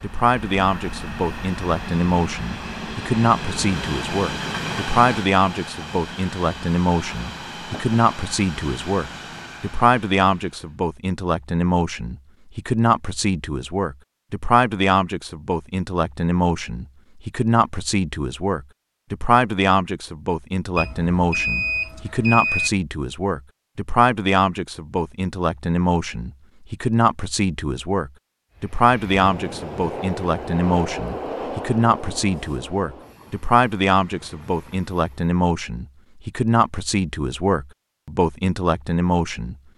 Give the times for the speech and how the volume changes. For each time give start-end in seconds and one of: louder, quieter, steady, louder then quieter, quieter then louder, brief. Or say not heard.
0.0-39.5 steady.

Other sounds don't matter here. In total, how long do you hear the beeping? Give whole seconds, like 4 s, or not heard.
4 s.